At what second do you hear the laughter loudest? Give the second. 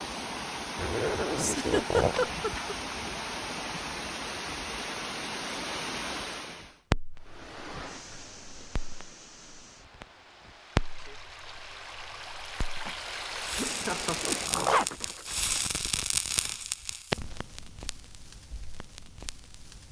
2 s.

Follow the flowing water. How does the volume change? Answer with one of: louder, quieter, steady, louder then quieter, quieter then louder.
quieter then louder.